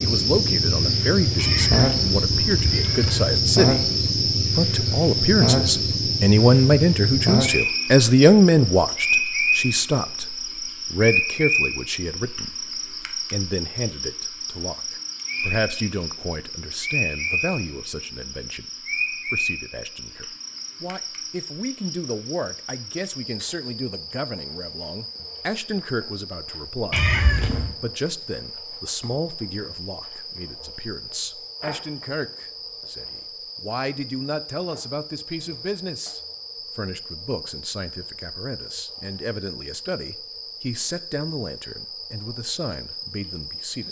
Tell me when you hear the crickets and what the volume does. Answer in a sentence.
The crickets can be heard from 0.0 to 43.8 s, getting quieter.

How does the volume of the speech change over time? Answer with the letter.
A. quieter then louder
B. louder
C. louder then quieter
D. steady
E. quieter
E.